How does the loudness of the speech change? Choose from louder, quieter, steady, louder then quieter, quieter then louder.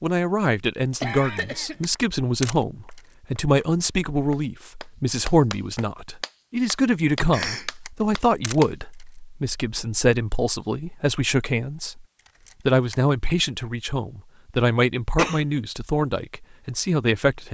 steady.